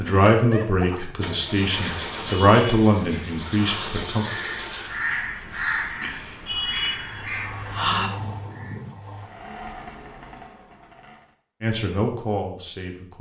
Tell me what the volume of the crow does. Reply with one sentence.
The volume of the crow goes up.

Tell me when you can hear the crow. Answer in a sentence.
The crow can be heard from 1.7 to 8.9 s.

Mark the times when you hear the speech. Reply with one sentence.
You can hear the speech from 0.0 to 4.2 s and from 11.6 to 13.1 s.